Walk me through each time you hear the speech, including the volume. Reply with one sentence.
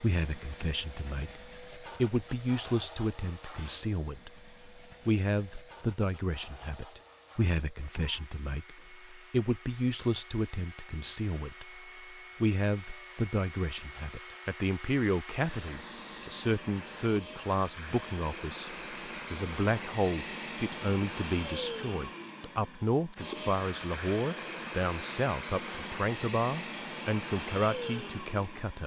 The speech can be heard from 0.0 to 28.8 s, at a steady volume.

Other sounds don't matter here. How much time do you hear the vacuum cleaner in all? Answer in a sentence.
The vacuum cleaner can be heard for 29 seconds in total.